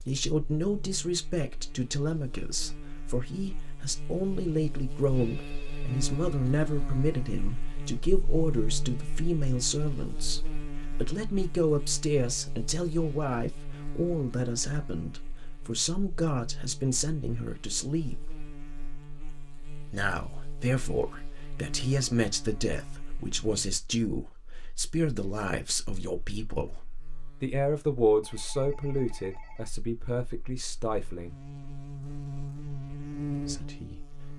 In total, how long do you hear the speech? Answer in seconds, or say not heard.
30 s.